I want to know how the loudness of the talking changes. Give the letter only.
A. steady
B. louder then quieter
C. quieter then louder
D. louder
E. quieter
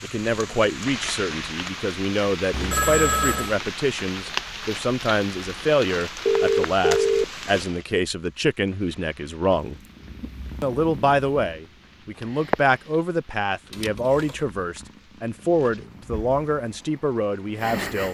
A.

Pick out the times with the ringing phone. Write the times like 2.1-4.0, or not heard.
2.5-3.5, 6.2-7.8, 13.7-14.3.